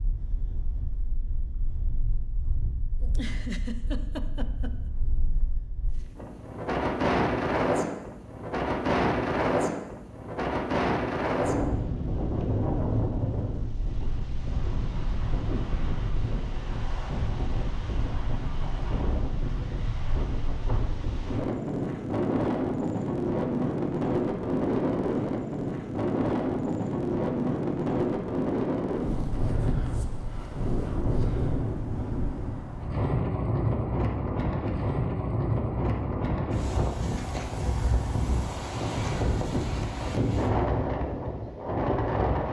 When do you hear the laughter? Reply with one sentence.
You can hear the laughter from 3.0 to 4.9 s.